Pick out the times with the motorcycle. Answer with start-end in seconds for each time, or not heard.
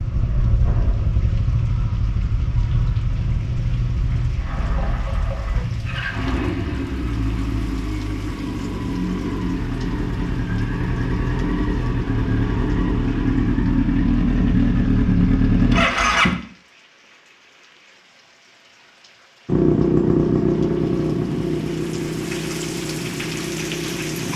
0.0-16.4, 19.4-24.3.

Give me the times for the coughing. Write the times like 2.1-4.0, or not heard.
not heard.